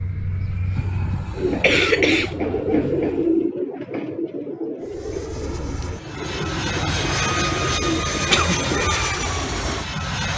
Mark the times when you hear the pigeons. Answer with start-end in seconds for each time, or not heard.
1.4-8.9.